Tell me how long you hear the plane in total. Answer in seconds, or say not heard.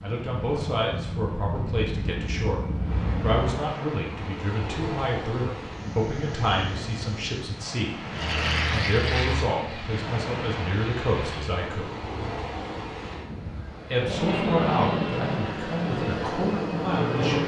11 s.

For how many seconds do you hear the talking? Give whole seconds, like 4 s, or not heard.
14 s.